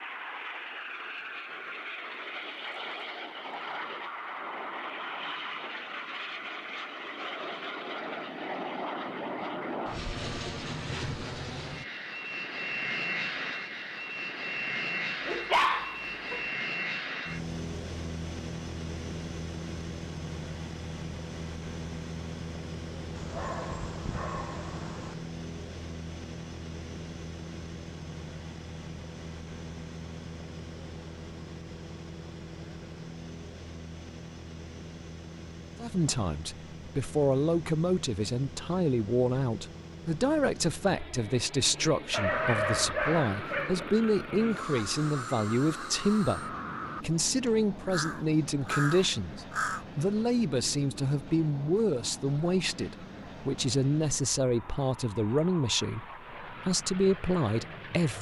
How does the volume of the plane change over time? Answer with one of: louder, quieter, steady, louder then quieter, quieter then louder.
quieter.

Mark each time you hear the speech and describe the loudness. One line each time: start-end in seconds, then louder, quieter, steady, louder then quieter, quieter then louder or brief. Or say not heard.
35.8-58.1 steady.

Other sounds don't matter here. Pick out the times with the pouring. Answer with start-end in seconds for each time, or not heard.
not heard.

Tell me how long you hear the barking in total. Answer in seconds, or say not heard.
5 s.